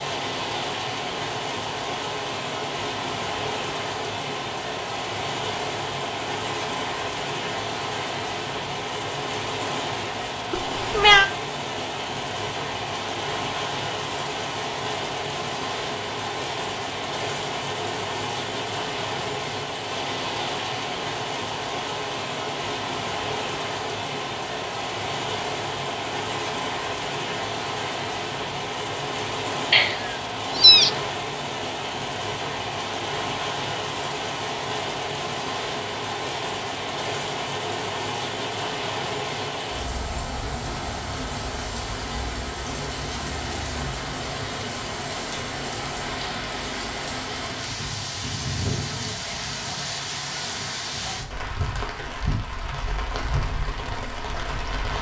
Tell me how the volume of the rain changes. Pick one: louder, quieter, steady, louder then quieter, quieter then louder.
steady.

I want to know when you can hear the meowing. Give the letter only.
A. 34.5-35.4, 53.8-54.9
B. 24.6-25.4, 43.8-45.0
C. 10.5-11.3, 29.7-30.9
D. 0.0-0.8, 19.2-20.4
C.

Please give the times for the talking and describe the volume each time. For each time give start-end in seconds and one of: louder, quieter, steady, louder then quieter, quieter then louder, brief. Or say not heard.
not heard.